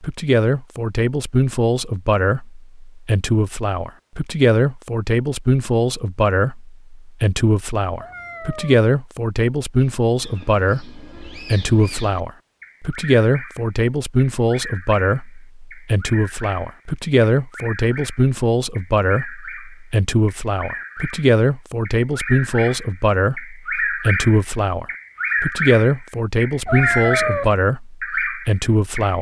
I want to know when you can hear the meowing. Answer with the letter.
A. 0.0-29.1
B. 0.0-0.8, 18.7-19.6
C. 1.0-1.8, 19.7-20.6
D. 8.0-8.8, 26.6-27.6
D.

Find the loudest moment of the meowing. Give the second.
27 s.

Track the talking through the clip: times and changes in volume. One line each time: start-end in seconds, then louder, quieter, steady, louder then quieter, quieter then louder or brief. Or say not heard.
0.0-29.1 steady.